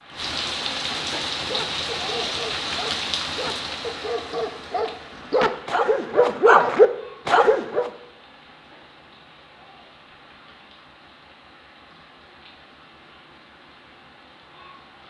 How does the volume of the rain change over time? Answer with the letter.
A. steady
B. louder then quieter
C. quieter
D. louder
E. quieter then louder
C.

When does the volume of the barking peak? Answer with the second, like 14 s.
7 s.